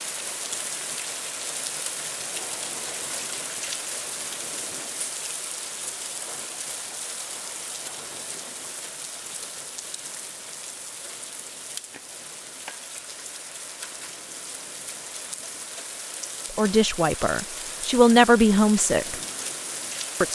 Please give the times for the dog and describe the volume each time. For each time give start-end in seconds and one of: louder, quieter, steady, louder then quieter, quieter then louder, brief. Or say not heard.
not heard.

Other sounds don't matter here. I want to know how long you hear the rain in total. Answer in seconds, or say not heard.
20 s.